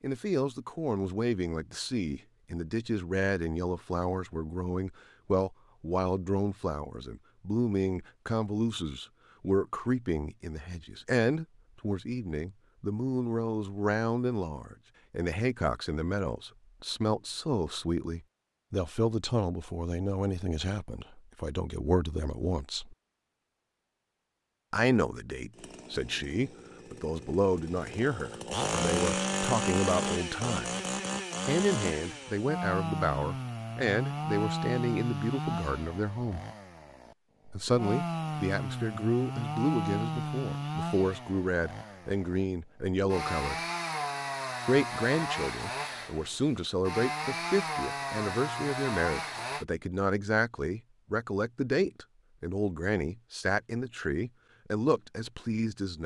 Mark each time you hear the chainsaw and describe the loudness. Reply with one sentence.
The chainsaw can be heard from 25.6 to 49.6 s, at a steady volume.